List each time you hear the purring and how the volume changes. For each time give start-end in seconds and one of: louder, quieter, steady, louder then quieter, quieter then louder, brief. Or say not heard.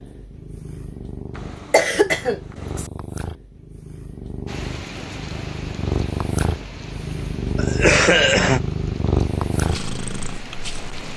0.0-11.1 louder.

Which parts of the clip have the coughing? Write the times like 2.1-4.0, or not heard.
1.4-2.9, 7.5-8.6.